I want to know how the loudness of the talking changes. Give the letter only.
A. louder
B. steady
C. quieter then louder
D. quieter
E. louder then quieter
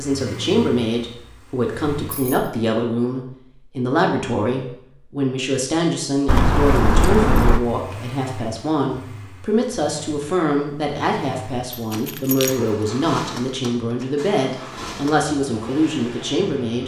B.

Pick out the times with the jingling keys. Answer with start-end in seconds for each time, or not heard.
2.0-2.5, 6.2-7.6, 11.7-12.6.